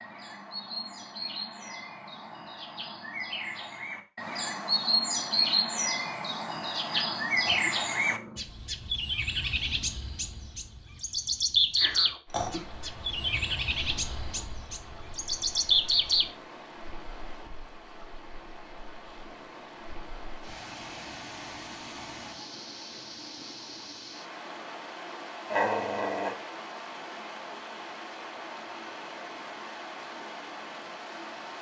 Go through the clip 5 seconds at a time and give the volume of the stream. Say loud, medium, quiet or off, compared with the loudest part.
off, off, medium, medium, loud, loud, loud.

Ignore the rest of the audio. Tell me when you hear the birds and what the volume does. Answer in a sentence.
You can hear the birds from 0.0 to 16.3 s, getting louder.